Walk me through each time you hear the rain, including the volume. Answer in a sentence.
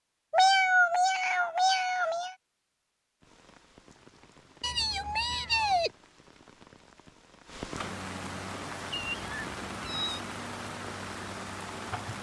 You can hear the rain from 3.2 to 12.1 s, getting louder.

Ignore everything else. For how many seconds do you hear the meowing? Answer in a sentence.
You can hear the meowing for 5 seconds altogether.